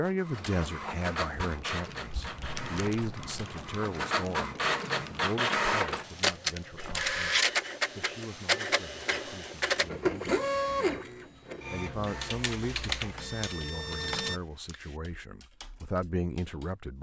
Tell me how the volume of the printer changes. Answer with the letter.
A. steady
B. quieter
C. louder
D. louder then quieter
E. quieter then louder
D.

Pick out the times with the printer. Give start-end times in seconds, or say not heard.
0.0-14.4.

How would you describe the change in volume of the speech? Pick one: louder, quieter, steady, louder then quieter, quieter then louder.
quieter then louder.